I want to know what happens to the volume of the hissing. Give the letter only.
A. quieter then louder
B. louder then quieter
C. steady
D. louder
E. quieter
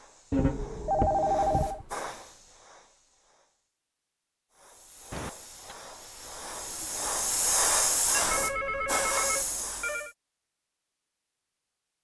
A.